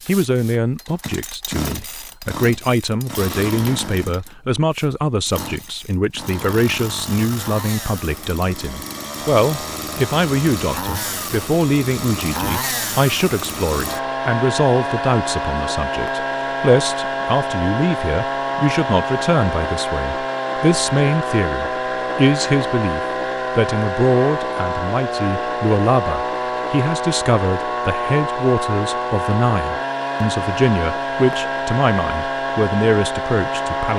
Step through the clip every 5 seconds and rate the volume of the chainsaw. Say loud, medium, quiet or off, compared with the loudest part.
medium, medium, loud, loud, loud, loud, loud.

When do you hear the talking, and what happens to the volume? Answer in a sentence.
You can hear the talking from 0.1 to 33.9 s, at a steady volume.